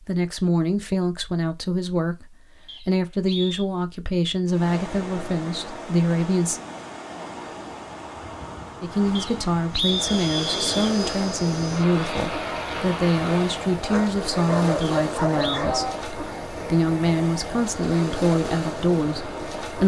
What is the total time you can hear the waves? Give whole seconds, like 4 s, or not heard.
15 s.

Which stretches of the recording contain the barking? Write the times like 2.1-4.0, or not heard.
13.8-15.9.